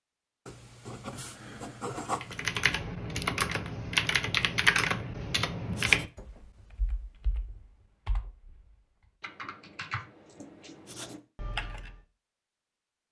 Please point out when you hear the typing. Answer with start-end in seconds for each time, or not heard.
2.2-12.0.